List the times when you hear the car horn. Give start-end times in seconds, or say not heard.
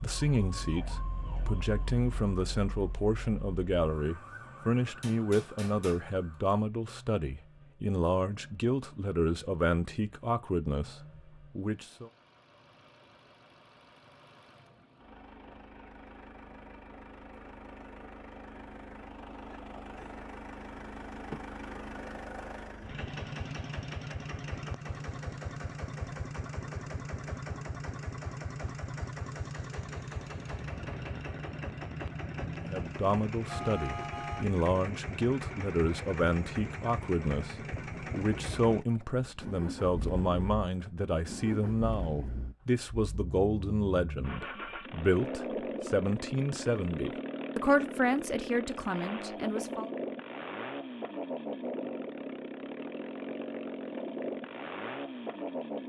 33.5-34.5.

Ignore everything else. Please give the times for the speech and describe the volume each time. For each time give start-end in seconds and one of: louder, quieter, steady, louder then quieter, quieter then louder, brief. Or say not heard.
0.0-12.1 steady
32.6-49.9 steady.